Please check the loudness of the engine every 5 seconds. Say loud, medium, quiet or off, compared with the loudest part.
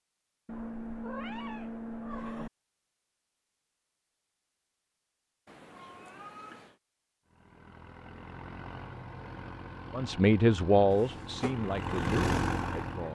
off, medium, loud.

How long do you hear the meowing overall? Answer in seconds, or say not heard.
4 s.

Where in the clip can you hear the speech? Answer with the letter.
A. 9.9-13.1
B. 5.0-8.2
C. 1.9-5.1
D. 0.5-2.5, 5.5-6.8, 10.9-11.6
A.